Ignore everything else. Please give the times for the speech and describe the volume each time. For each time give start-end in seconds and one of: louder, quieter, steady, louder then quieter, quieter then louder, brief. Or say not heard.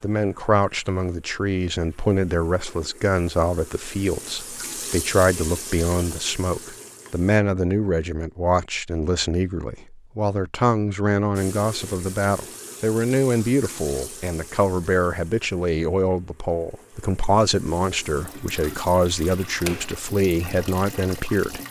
0.0-21.6 steady.